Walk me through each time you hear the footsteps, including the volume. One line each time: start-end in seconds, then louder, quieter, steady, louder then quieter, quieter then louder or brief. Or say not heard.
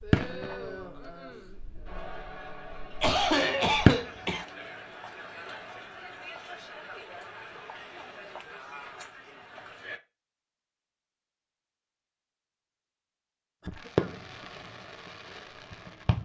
not heard.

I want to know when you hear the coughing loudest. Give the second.
3 s.